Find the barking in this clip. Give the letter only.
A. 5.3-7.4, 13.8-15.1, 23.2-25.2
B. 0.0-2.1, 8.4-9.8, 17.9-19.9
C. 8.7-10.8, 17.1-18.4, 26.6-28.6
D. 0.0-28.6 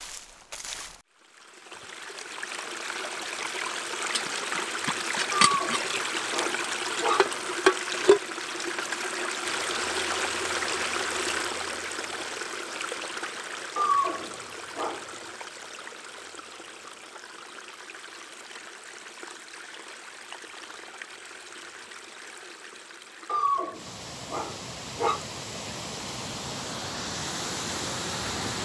A.